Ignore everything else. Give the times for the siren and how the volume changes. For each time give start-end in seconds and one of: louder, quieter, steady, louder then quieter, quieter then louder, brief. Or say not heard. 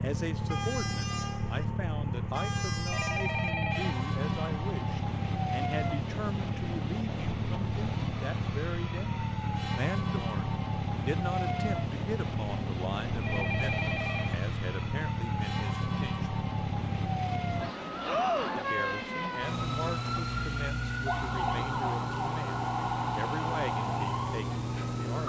0.0-25.2 steady.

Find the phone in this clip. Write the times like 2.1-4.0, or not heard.
2.9-4.0, 13.2-14.4.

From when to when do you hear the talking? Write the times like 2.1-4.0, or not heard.
0.0-9.0, 9.8-16.2, 18.6-25.2.